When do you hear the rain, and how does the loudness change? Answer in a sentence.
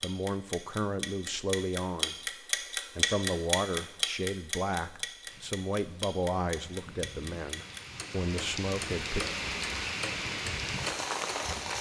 You can hear the rain from 5.2 to 11.7 s, getting louder.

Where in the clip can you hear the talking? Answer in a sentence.
The talking can be heard from 0.0 to 9.2 s.